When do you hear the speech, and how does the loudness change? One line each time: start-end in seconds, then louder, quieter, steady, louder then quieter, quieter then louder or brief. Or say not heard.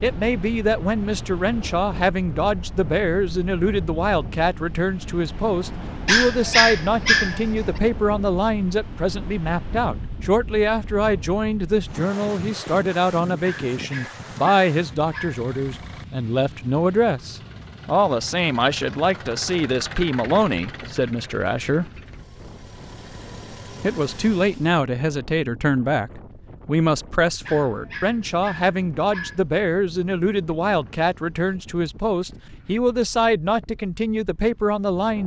0.0-21.9 steady
23.8-35.2 steady.